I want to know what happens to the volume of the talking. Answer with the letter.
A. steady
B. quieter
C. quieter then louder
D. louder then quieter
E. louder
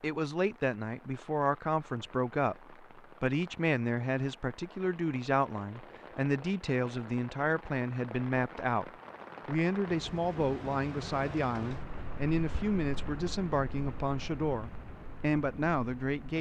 A.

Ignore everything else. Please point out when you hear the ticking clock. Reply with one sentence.
You can't hear the ticking clock here.